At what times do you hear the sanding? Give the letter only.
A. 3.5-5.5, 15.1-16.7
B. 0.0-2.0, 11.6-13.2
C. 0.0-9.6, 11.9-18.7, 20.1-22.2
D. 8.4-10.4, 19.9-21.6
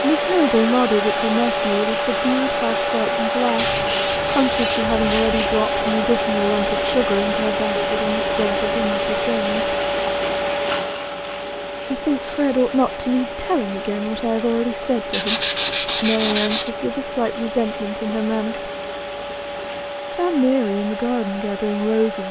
A.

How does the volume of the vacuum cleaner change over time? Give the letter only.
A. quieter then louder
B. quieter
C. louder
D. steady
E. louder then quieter
B.